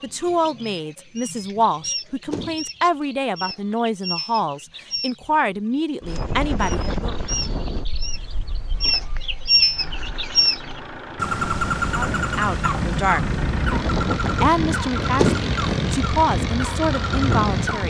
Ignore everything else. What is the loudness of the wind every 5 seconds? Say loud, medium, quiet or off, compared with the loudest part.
off, medium, loud, loud.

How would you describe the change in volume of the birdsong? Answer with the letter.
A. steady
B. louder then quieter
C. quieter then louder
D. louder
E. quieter
B.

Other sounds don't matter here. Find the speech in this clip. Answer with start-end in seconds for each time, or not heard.
0.0-7.2, 11.9-13.2, 14.2-17.8.